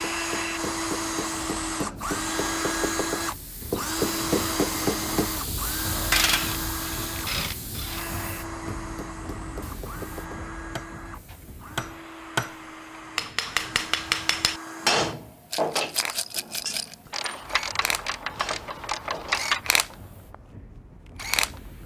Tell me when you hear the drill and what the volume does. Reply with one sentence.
You can hear the drill from 0.0 to 21.6 s, getting quieter then louder.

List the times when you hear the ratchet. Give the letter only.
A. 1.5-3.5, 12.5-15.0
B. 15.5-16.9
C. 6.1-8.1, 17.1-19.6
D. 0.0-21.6
C.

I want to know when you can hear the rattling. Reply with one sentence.
The rattling can be heard from 15.5 to 16.9 s.